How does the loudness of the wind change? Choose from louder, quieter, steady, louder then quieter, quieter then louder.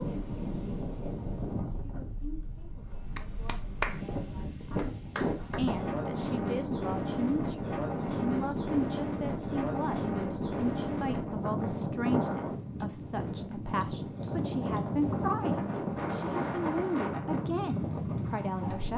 louder.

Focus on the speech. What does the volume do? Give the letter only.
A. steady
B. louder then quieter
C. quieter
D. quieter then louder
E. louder
E.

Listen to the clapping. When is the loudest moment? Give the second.
4 s.